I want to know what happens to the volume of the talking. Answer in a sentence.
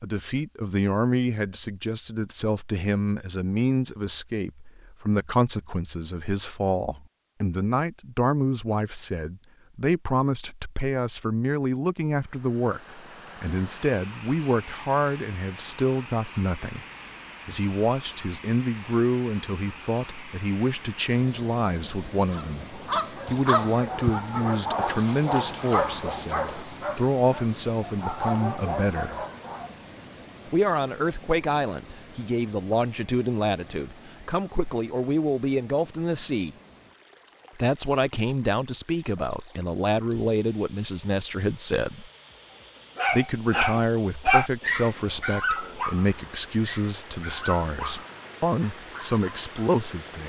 The loudness of the talking stays about the same.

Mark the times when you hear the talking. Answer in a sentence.
You can hear the talking from 0.0 to 16.9 s, from 17.4 to 29.2 s, from 30.4 to 36.5 s, from 37.5 to 42.1 s and from 43.1 to 50.2 s.